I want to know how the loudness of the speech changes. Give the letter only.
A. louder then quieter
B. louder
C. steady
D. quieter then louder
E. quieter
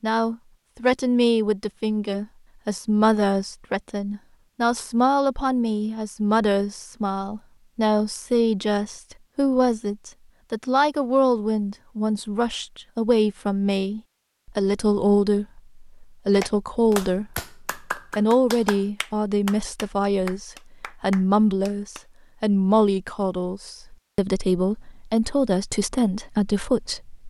C.